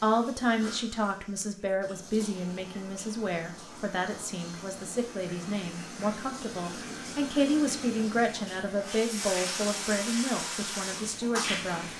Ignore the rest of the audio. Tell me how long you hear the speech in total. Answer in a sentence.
The speech can be heard for 12 seconds in total.